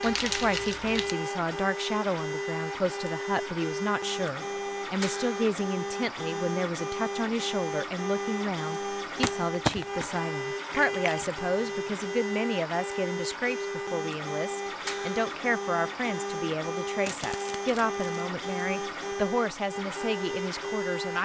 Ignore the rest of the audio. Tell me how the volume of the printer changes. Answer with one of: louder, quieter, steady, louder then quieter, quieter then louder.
steady.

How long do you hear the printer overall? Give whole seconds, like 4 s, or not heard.
21 s.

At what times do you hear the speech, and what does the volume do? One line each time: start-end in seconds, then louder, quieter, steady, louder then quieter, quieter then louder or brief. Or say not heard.
0.0-21.2 steady.